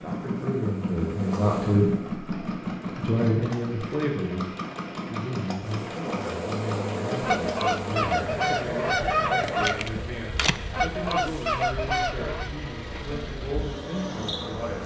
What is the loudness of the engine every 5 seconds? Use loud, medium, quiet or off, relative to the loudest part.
loud, loud, medium.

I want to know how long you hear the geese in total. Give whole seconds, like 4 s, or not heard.
5 s.